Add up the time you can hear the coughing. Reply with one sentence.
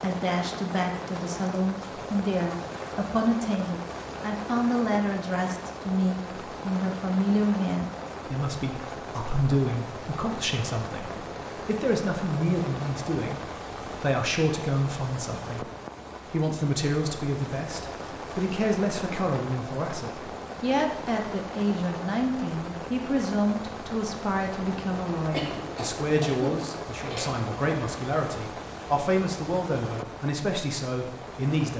You can hear the coughing for 2 seconds altogether.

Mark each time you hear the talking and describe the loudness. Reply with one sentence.
You can hear the talking from 0.0 to 15.7 s, at a steady volume; and from 16.3 to 31.7 s, at a steady volume.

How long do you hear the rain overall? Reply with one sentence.
The rain can be heard for 32 seconds in total.